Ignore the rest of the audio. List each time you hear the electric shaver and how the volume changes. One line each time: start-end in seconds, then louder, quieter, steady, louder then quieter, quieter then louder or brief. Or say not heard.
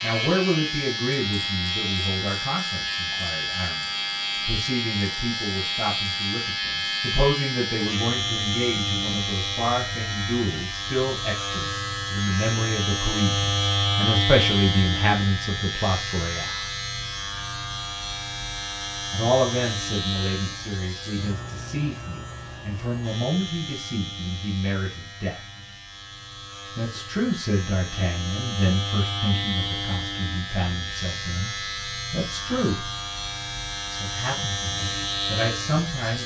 0.0-36.2 quieter then louder.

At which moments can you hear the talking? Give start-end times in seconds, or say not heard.
0.0-16.5, 19.1-25.4, 26.8-32.9, 33.9-36.2.